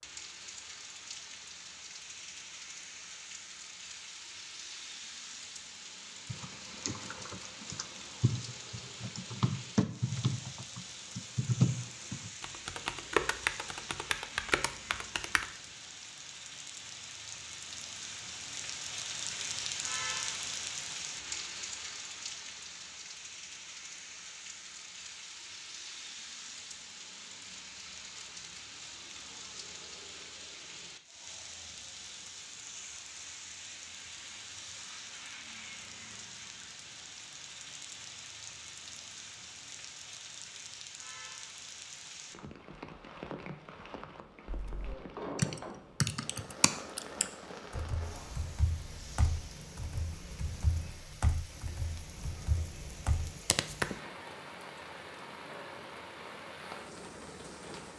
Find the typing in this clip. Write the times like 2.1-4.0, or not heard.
6.3-15.4, 44.5-54.0.